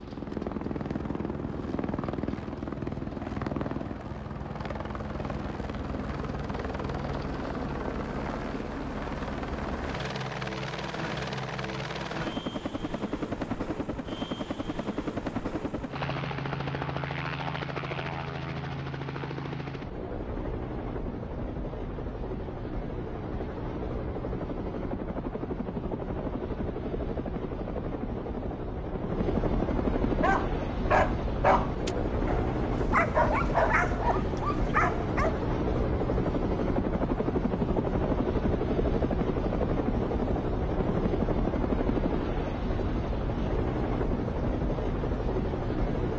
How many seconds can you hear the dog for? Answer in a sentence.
You can hear the dog for 5 seconds altogether.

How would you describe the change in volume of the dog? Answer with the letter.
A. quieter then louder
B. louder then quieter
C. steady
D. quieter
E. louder
D.